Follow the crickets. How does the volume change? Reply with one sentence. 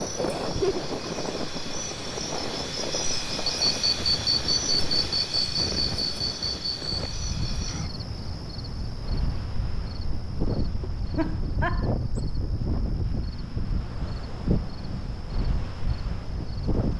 The loudness of the crickets goes up, then down.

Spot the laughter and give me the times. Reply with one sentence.
You can hear the laughter from 0.1 to 0.8 s and from 11.2 to 11.9 s.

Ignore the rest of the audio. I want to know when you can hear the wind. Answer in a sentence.
You can hear the wind from 0.0 to 16.9 s.